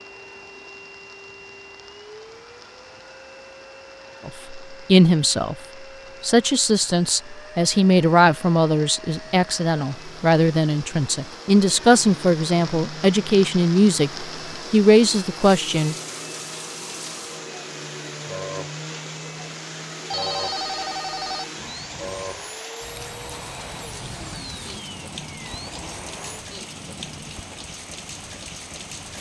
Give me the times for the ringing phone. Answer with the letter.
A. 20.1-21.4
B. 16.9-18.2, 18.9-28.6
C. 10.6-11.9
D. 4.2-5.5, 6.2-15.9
A.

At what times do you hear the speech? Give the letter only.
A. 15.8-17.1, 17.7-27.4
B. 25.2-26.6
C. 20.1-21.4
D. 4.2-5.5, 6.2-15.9
D.